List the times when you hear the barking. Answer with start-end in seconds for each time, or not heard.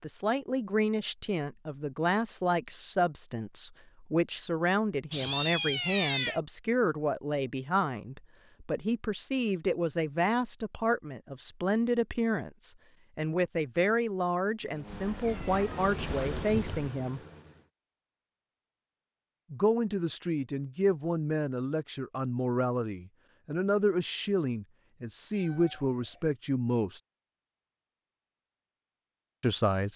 not heard.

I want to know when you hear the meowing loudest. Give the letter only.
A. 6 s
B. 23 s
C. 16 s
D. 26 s
A.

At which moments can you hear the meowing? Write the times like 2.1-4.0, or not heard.
5.1-6.4, 14.9-16.9, 25.3-26.3.